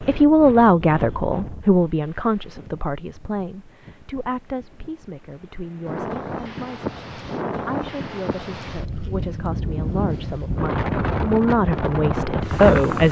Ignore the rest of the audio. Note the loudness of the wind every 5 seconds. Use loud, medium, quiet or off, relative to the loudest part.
quiet, medium, loud.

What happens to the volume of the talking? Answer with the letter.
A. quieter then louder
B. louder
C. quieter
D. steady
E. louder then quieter
A.